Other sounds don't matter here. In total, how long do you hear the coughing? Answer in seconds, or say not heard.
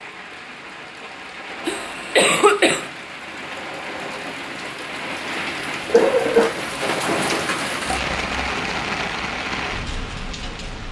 2 s.